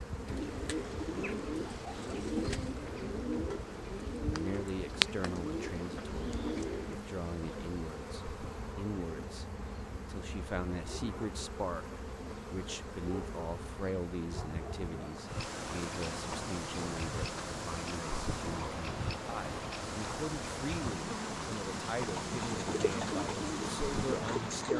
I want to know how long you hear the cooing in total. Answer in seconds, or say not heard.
9 s.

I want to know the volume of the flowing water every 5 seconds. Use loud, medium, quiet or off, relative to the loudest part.
medium, medium, medium, loud, loud.